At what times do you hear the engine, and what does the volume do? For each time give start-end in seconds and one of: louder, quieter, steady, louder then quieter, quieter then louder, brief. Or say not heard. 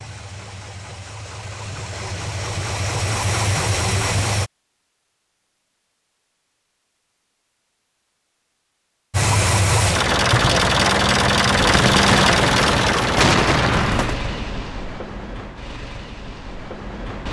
0.0-4.5 louder
9.1-17.2 quieter.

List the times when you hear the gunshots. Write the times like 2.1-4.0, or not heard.
11.6-14.2.